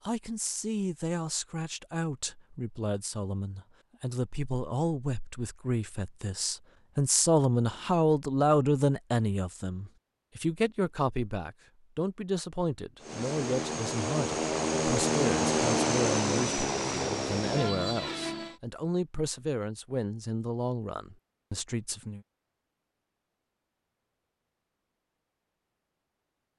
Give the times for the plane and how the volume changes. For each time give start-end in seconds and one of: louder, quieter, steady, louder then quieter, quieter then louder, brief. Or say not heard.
13.0-18.6 louder then quieter.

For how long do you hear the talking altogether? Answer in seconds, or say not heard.
22 s.